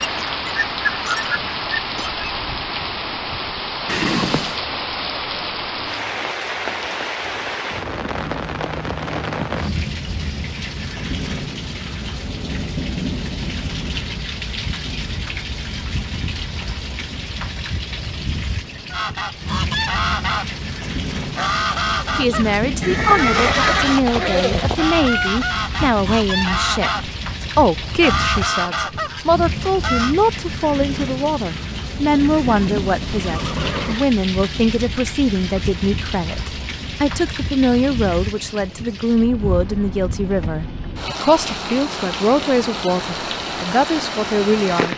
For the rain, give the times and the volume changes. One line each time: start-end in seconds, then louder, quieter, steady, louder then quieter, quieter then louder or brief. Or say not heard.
0.0-44.9 steady.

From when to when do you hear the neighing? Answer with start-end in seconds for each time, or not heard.
3.9-4.6, 22.8-24.8, 32.3-34.0.